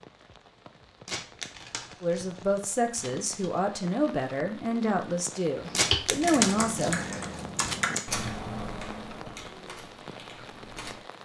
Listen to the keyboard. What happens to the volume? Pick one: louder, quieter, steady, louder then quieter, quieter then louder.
quieter.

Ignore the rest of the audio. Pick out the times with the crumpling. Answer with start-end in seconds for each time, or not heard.
1.1-3.5, 5.8-7.9.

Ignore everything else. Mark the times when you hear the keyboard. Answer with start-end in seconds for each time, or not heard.
5.7-10.9.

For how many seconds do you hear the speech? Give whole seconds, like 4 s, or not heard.
5 s.